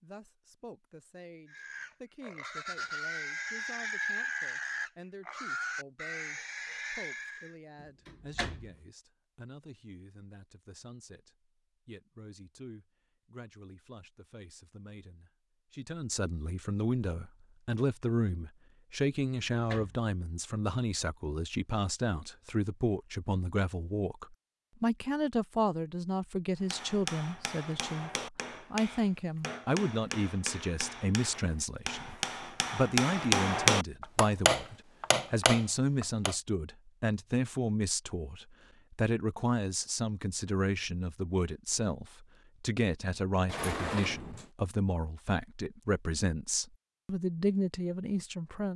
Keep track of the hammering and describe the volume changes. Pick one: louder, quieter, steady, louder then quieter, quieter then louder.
louder.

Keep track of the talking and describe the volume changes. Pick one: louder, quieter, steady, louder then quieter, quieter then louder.
louder.